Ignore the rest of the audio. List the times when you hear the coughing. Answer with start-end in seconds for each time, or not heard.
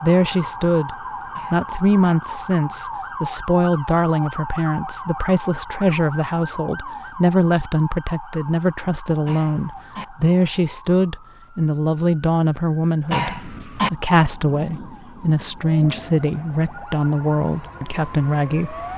1.3-2.1, 9.2-10.1, 13.1-13.9.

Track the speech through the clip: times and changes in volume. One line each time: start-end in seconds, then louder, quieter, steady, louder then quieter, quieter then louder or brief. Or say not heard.
0.0-0.9 brief
1.5-18.9 steady.